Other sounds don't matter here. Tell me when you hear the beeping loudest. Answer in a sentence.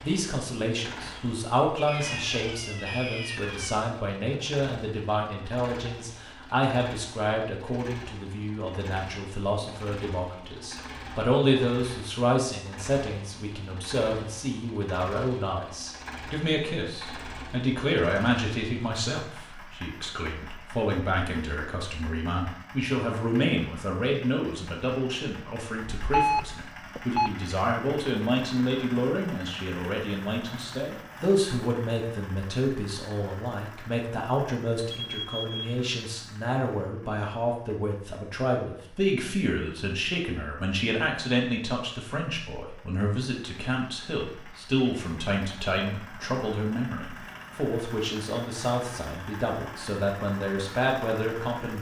The loudest moment of the beeping is at 26 seconds.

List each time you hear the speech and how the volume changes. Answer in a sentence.
You can hear the speech from 0.0 to 51.7 s, at a steady volume.